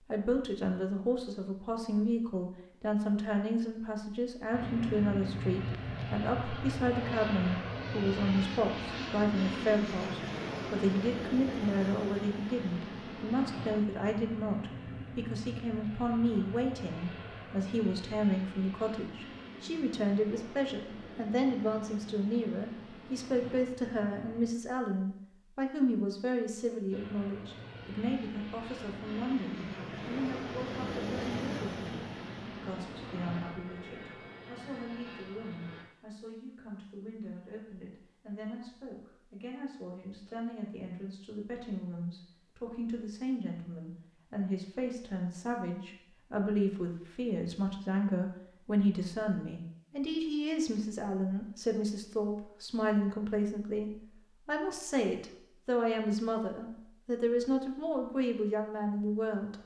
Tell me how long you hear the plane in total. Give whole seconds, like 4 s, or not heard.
29 s.